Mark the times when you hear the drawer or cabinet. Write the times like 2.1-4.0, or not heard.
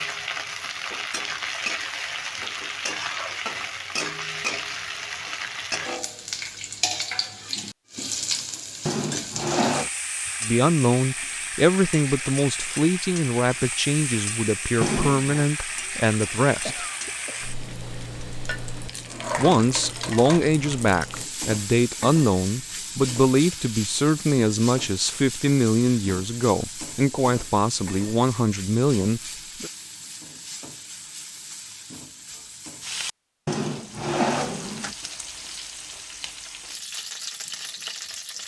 8.8-9.9, 14.8-15.4, 33.5-35.0.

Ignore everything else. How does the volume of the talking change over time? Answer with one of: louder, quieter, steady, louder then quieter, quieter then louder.
steady.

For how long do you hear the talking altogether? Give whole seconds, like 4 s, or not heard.
17 s.